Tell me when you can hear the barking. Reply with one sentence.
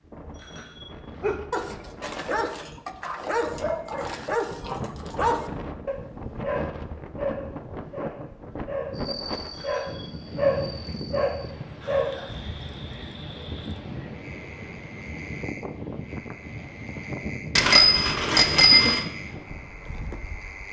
You can hear the barking from 1.1 to 12.7 s.